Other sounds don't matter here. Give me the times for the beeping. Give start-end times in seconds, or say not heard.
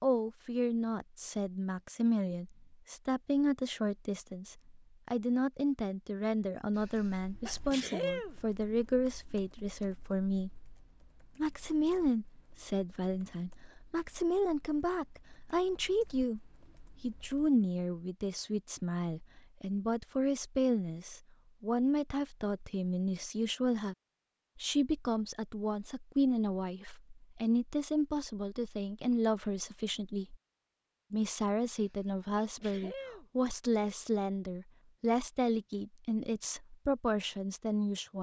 not heard.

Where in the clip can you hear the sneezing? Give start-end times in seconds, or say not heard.
6.8-8.3, 31.7-33.2.